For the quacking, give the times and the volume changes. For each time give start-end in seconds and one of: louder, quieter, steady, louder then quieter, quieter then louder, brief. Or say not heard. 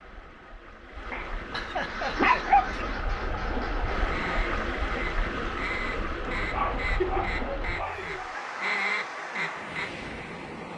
1.7-10.2 louder.